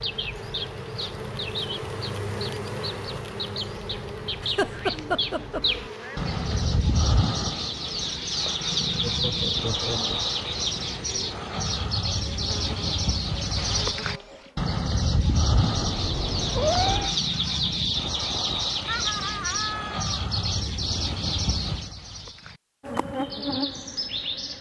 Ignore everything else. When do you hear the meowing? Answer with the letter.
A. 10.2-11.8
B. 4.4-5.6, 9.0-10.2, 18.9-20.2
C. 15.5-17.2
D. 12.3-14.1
C.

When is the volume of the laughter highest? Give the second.
5 s.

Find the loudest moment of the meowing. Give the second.
17 s.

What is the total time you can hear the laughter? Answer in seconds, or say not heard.
4 s.